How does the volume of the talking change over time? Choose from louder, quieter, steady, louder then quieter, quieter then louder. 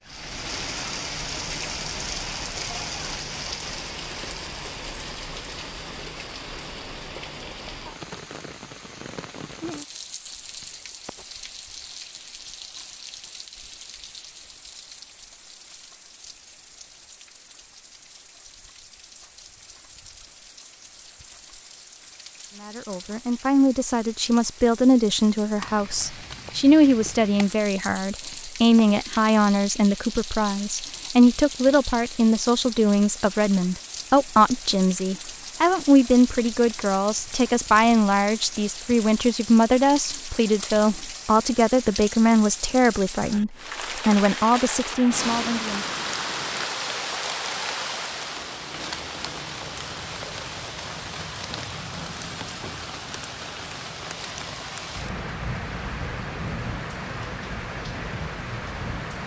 steady.